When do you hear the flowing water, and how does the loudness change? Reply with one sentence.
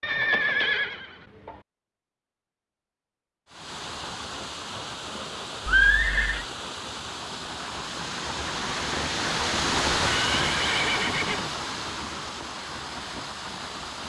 You can hear the flowing water from 3.5 to 14.0 s, getting louder then quieter.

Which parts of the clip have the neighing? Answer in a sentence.
The neighing can be heard from 0.0 to 1.6 s, from 5.7 to 6.5 s and from 10.1 to 11.4 s.